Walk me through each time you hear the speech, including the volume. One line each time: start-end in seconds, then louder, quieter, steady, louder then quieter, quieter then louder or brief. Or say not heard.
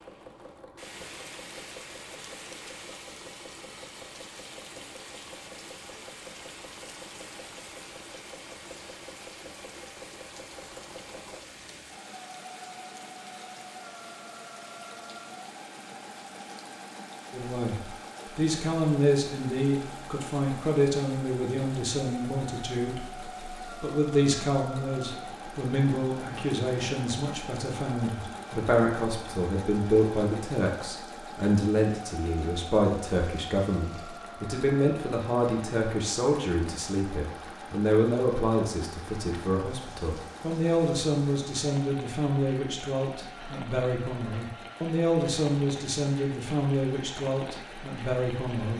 17.3-48.7 steady.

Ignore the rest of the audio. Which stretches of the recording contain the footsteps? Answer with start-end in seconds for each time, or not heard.
not heard.